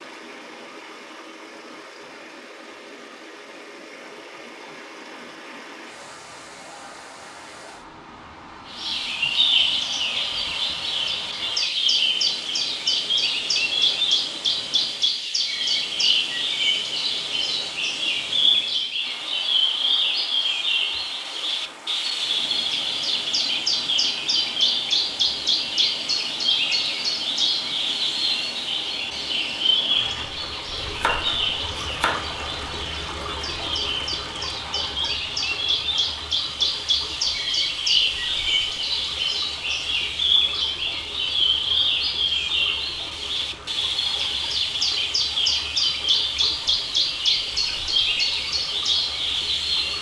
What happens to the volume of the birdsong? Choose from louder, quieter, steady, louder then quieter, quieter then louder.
steady.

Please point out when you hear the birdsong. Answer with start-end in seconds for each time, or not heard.
8.7-49.9.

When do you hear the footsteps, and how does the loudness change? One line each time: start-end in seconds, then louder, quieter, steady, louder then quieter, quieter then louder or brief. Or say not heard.
not heard.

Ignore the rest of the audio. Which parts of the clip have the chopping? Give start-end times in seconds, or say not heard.
30.8-32.2.